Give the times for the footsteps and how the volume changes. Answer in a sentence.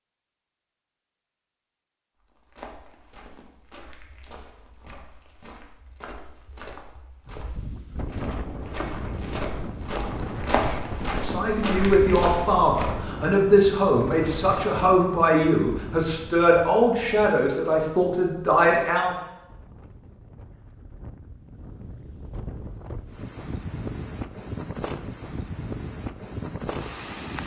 The footsteps can be heard from 2.2 to 13.1 s, getting louder.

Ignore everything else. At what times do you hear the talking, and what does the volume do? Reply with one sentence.
The talking can be heard from 11.2 to 19.1 s, at a steady volume.